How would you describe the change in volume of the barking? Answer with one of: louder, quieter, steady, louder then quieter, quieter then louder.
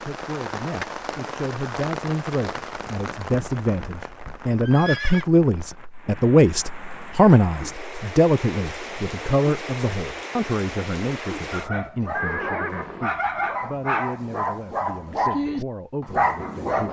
louder.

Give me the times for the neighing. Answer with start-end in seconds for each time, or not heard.
4.6-5.2, 12.1-13.1.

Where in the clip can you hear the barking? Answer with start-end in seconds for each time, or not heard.
11.4-16.8.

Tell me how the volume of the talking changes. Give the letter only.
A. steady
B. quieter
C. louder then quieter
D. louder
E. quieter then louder
C.